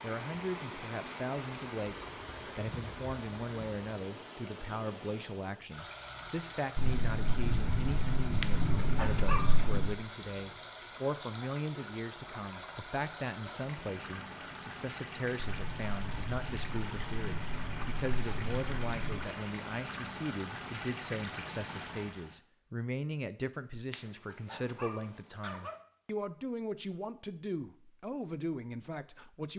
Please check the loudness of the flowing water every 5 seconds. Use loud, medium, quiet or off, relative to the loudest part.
loud, loud, loud, loud, loud, off.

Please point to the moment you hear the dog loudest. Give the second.
9 s.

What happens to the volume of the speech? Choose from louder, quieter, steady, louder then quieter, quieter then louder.
steady.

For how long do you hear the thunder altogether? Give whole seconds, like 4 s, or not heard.
7 s.